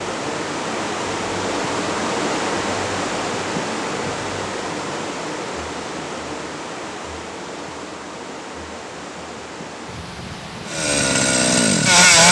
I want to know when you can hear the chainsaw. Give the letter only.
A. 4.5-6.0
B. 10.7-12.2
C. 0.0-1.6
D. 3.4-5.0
B.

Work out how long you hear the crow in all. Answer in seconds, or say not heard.
not heard.